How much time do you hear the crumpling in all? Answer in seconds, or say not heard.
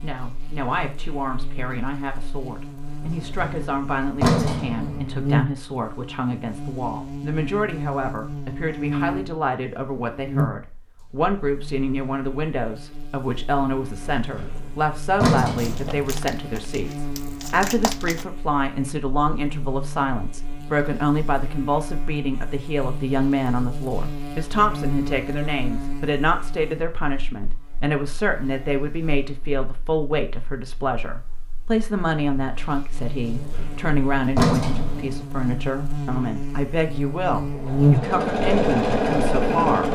3 s.